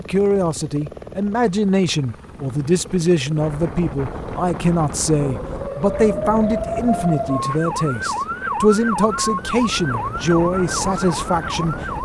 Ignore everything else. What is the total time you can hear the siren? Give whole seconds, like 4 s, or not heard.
7 s.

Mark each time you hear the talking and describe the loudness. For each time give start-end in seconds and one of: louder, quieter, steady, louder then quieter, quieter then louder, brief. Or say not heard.
0.0-11.8 steady.